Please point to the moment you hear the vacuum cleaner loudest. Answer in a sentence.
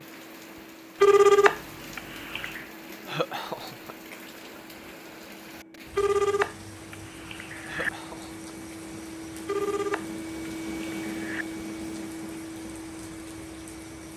The volume of the vacuum cleaner peaks at 11 seconds.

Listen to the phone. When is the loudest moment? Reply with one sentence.
The volume of the phone peaks at 1 second.